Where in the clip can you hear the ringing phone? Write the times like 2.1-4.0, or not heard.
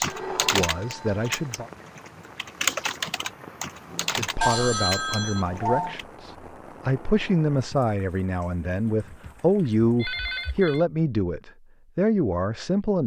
0.1-1.2, 4.4-6.0, 9.0-10.8.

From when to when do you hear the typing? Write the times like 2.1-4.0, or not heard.
0.0-6.0.